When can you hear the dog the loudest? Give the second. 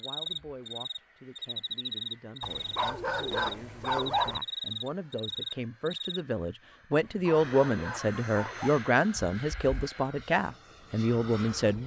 4 s.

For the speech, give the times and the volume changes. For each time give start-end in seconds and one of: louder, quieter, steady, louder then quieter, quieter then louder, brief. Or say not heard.
0.0-11.8 louder.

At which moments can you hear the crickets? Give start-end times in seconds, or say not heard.
0.0-6.2.